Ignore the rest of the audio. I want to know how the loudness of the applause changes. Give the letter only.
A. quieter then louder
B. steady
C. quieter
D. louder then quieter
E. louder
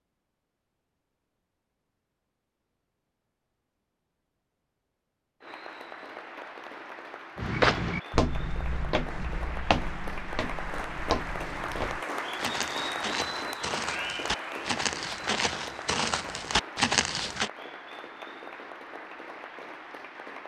D.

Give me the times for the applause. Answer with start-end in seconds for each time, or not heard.
5.4-20.4.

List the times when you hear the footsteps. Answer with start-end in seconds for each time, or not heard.
7.3-17.5.